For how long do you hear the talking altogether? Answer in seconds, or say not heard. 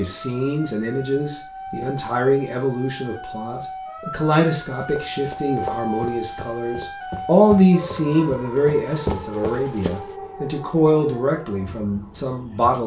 13 s.